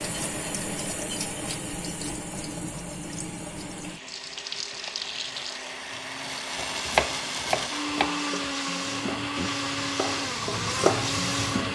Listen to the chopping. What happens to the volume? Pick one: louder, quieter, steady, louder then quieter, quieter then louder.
quieter then louder.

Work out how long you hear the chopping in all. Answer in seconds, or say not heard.
5 s.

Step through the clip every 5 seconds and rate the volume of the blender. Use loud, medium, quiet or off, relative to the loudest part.
quiet, loud, loud.